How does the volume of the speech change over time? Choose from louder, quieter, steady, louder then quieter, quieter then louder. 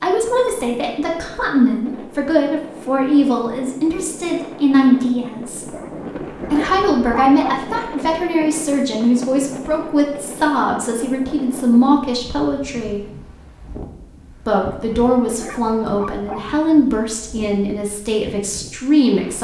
steady.